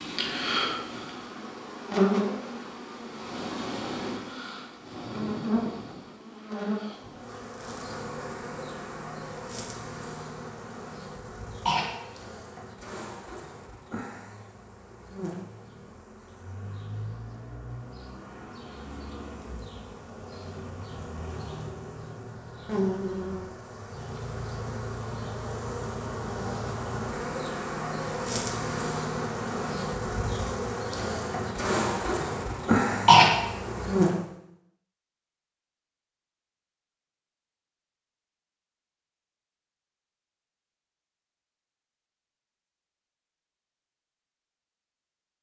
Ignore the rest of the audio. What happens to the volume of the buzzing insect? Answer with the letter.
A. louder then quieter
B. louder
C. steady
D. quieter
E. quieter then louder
E.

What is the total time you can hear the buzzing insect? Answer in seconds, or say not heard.
34 s.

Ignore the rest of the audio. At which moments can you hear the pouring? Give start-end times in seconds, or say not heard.
not heard.